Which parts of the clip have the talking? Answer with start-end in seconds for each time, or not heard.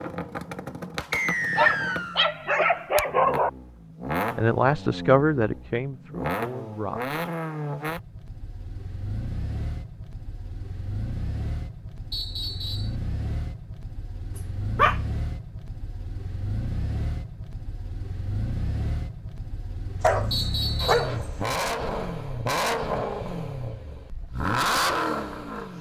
4.3-7.0.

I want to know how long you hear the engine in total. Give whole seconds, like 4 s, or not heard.
26 s.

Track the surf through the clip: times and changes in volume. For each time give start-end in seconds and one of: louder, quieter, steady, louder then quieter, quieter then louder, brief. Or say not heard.
not heard.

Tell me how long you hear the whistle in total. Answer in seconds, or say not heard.
3 s.